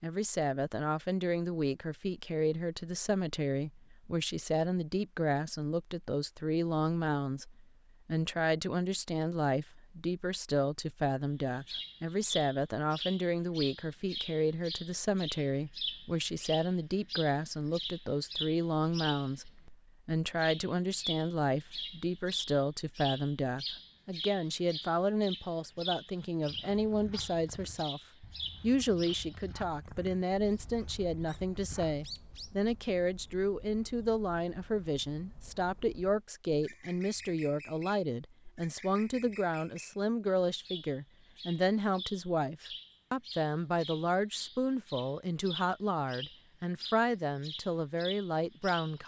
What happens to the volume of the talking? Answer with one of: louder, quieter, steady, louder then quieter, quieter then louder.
steady.